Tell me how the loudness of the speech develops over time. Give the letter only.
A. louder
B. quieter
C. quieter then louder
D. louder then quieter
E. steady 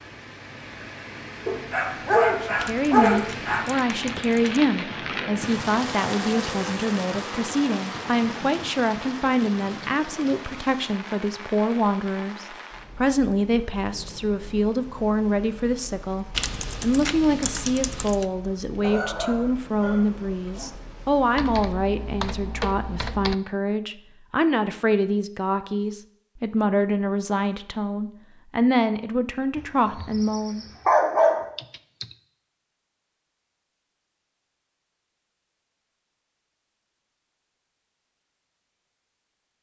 E.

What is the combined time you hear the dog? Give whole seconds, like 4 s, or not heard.
6 s.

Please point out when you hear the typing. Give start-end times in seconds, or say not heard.
2.5-4.6, 16.3-18.2, 21.4-23.4, 31.6-32.1.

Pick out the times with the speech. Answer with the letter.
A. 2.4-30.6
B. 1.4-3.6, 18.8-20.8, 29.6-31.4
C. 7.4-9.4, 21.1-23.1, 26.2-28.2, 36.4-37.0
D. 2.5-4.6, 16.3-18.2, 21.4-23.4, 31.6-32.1
A.